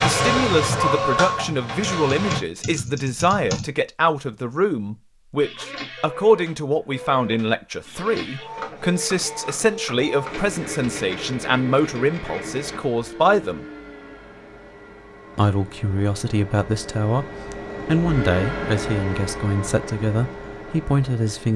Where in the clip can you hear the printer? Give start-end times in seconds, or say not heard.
0.0-2.4, 5.4-21.5.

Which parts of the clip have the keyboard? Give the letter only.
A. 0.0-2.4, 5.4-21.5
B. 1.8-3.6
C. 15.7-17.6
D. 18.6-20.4
B.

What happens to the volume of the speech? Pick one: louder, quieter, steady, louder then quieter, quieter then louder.
steady.